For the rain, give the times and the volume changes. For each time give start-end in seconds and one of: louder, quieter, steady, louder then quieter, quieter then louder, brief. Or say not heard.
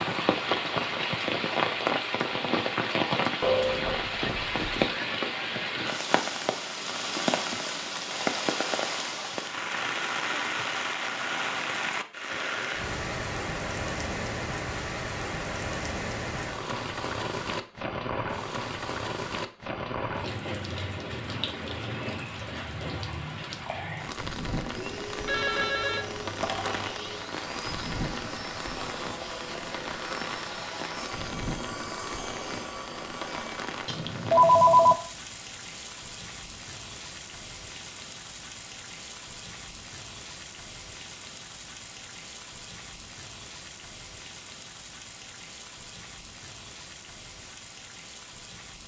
0.0-48.8 quieter.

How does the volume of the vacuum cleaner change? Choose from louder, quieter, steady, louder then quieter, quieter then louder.
steady.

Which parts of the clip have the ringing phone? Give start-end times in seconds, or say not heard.
3.4-4.7, 25.2-26.9, 33.9-35.0.